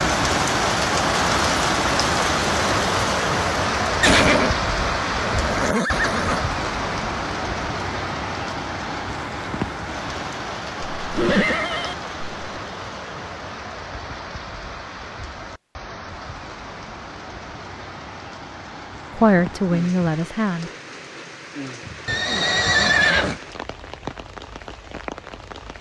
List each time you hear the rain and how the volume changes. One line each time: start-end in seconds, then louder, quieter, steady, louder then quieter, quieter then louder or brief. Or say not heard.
0.0-25.7 quieter.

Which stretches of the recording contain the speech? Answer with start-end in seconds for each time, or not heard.
19.1-20.7.